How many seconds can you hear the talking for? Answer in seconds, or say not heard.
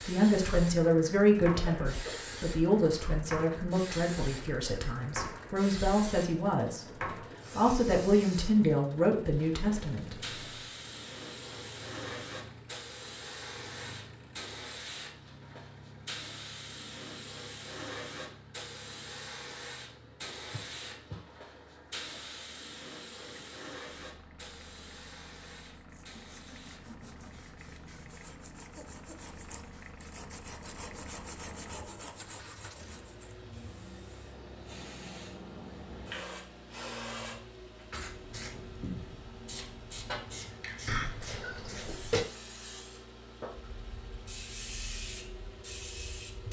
10 s.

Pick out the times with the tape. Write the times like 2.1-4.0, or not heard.
not heard.